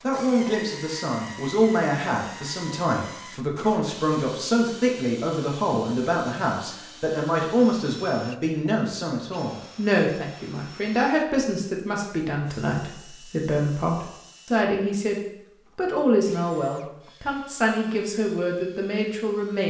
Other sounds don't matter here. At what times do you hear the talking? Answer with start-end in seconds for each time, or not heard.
0.0-19.6.